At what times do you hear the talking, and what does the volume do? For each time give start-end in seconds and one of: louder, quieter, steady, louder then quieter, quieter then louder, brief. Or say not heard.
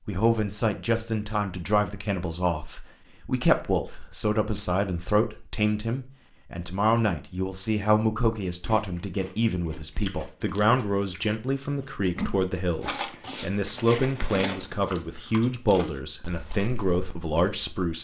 0.1-17.9 steady.